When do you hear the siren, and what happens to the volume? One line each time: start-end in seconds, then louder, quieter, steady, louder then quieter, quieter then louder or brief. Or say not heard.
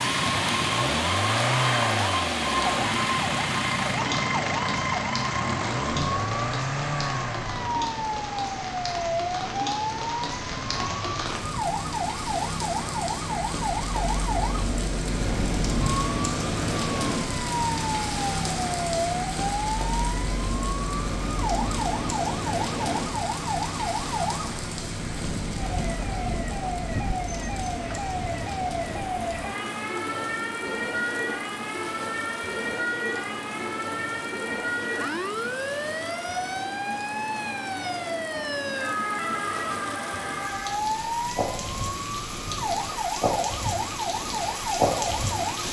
0.1-45.6 steady.